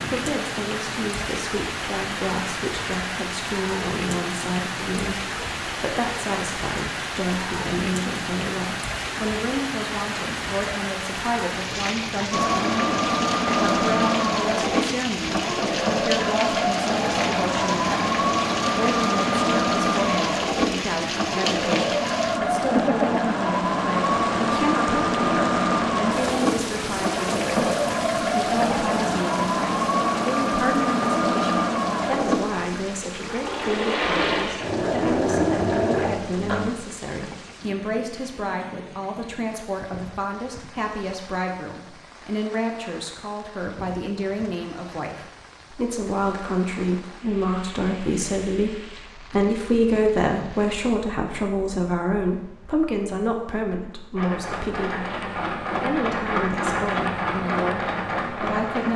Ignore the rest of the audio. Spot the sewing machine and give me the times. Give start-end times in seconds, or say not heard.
12.3-36.7, 54.1-58.9.